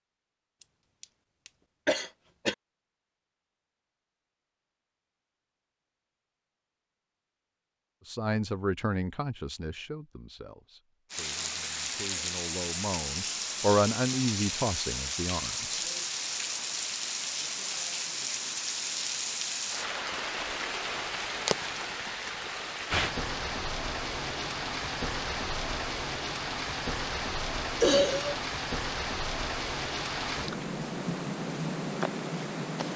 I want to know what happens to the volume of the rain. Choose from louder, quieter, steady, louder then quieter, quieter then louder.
steady.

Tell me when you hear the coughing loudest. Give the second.
28 s.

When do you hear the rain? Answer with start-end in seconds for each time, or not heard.
11.1-32.9.